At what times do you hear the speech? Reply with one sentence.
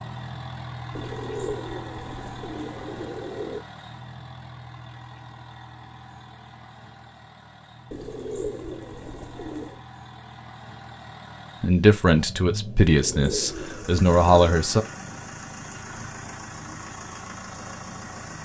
You can hear the speech from 11.6 to 14.8 s.